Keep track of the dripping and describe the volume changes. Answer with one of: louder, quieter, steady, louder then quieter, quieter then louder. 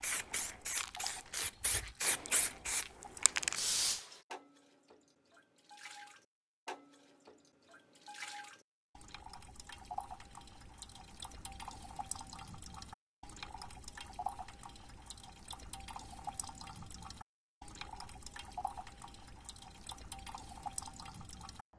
louder.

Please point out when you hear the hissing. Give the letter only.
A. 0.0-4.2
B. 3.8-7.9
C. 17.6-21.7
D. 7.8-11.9
A.